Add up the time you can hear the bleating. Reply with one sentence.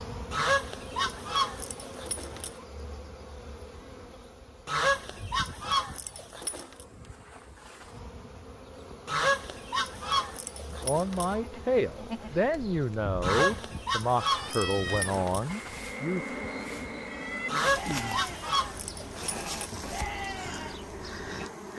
You can hear the bleating for 10 seconds altogether.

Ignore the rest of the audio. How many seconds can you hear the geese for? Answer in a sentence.
The geese can be heard for 11 seconds in total.